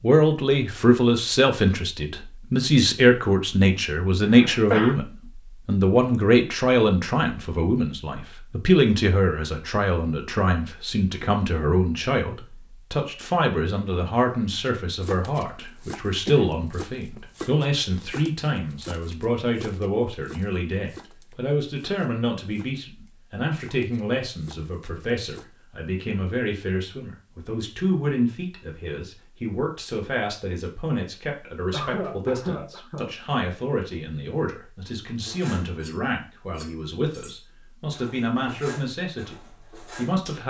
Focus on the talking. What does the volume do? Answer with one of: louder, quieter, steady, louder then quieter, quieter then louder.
quieter.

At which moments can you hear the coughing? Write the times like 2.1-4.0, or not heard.
4.2-5.0, 16.2-17.2, 31.7-33.1.